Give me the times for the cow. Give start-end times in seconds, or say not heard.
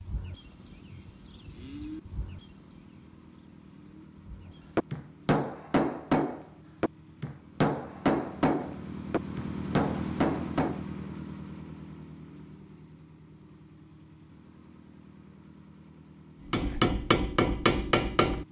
0.0-4.8.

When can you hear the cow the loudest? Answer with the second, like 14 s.
2 s.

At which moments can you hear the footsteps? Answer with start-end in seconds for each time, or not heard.
not heard.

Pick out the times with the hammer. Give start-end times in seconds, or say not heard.
4.8-10.8, 16.5-18.4.